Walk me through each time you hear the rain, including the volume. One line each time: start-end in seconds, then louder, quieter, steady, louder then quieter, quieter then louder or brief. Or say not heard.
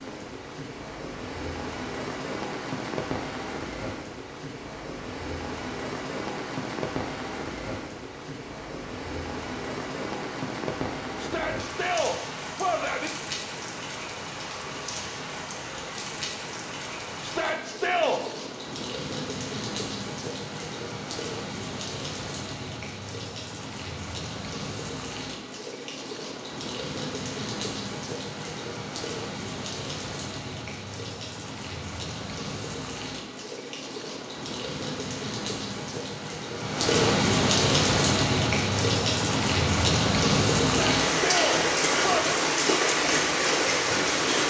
0.0-44.4 louder.